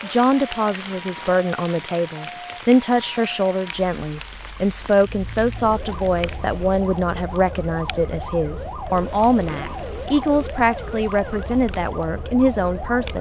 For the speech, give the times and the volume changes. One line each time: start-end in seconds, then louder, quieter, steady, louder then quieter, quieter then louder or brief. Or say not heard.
0.0-13.1 steady.